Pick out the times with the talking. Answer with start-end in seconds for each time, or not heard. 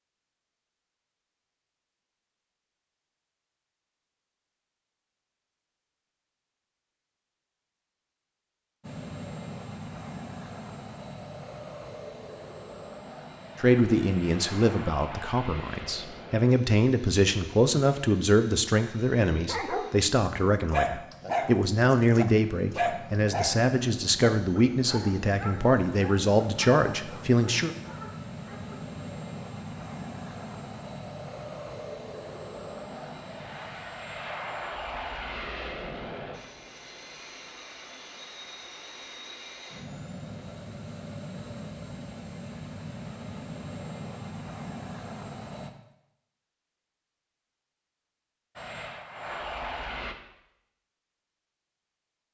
13.6-27.7.